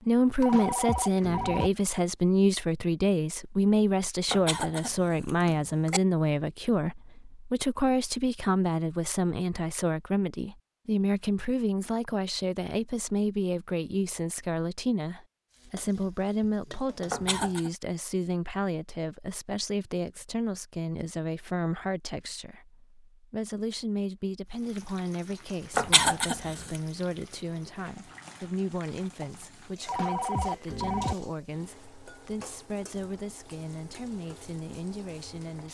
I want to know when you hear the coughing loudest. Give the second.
26 s.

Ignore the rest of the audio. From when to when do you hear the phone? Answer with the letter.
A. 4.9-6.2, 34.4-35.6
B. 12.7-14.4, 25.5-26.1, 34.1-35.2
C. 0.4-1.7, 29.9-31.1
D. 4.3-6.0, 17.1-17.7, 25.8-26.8
C.